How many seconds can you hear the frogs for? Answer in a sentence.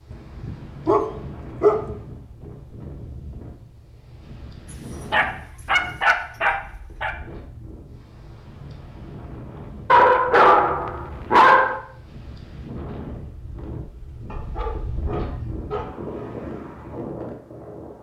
You can't hear the frogs here.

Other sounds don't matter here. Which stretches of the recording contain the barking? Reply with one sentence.
You can hear the barking from 0.1 to 2.0 s, from 5.1 to 7.2 s, from 9.9 to 11.8 s and from 14.3 to 16.3 s.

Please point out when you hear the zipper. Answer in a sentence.
You can't hear the zipper here.